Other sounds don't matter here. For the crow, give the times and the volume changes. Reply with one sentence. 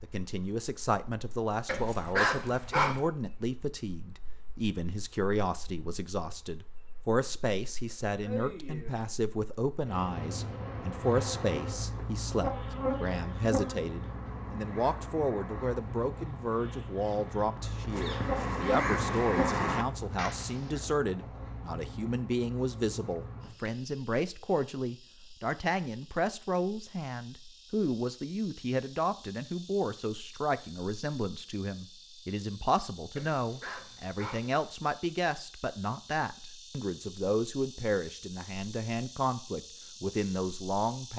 The crow can be heard from 10.8 to 20.8 s, getting louder.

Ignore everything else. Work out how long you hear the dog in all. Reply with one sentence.
You can hear the dog for 3 seconds altogether.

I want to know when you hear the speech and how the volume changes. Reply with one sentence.
You can hear the speech from 0.0 to 41.1 s, at a steady volume.